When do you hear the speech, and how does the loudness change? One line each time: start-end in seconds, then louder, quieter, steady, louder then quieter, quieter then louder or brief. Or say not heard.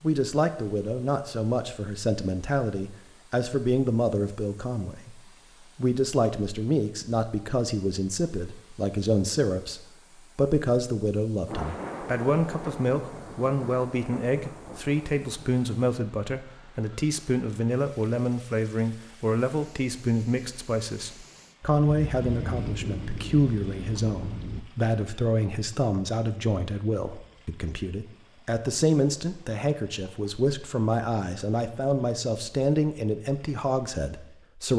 0.0-34.7 steady.